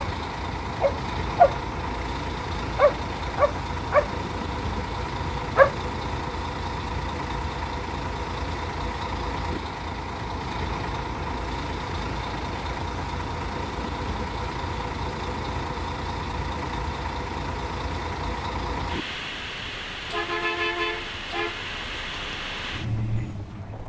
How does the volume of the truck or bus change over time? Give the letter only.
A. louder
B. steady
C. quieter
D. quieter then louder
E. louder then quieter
B.